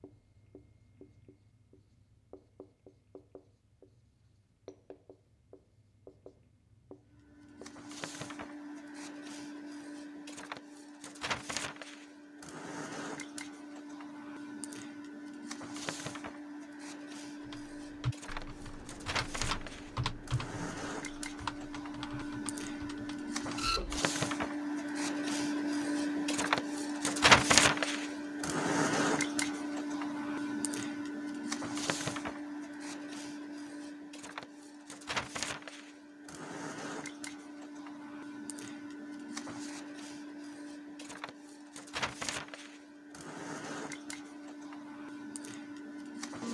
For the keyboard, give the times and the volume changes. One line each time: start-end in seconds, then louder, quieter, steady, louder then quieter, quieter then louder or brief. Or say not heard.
17.4-23.8 quieter.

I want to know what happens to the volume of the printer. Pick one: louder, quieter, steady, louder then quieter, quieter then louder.
louder then quieter.